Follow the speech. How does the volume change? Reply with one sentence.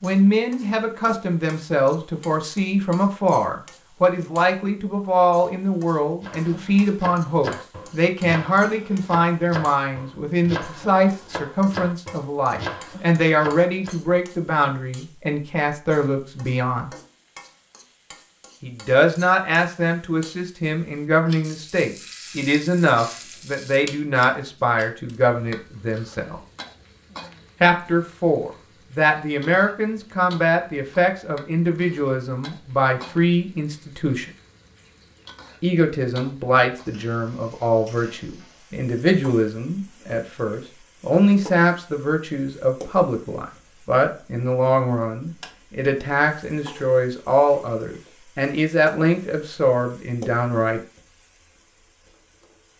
The loudness of the speech stays about the same.